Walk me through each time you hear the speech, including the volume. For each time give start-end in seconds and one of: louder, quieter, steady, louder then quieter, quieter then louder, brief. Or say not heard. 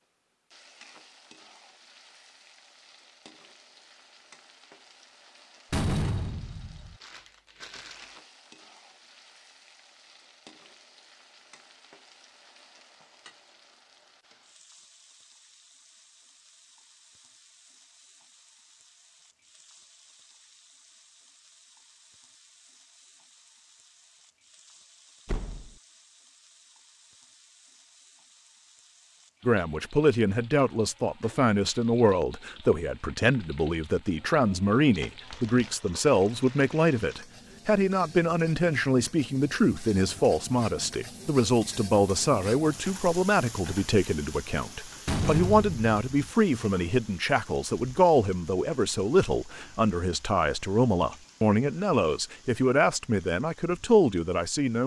29.4-54.8 steady.